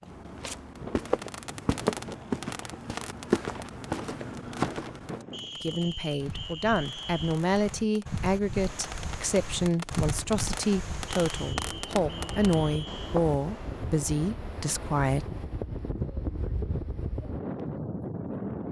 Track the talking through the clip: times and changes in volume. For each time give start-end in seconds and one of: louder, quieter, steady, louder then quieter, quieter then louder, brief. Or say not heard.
5.6-15.2 steady.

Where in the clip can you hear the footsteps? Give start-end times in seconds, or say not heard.
0.0-5.2.